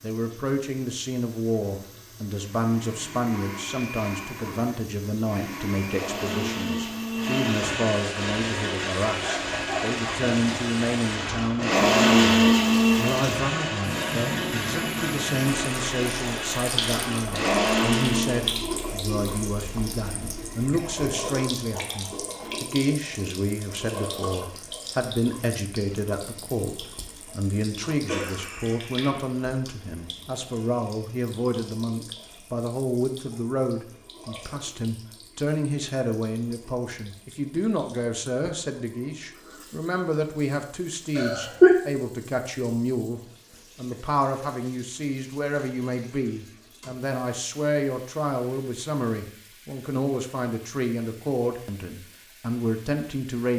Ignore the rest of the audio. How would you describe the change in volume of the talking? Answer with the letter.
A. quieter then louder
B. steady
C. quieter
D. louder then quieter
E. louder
B.